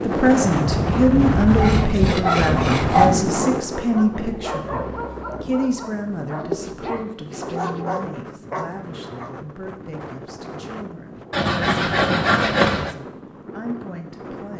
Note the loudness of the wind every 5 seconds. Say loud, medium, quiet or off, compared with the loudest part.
loud, quiet, quiet.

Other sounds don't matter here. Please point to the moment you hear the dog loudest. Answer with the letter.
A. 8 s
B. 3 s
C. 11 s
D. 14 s
B.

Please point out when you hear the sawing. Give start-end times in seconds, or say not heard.
1.4-3.1, 6.3-7.8, 11.3-12.9.